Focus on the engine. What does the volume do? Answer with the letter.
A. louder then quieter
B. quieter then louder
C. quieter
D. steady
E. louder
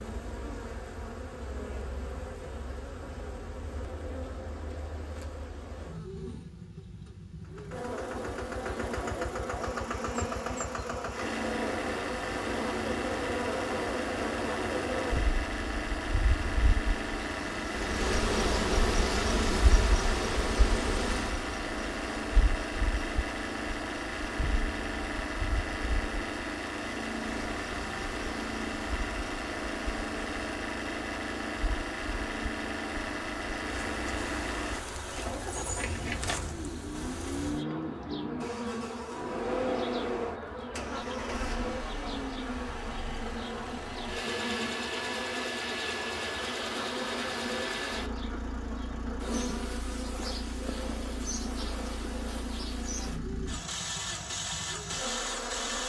D.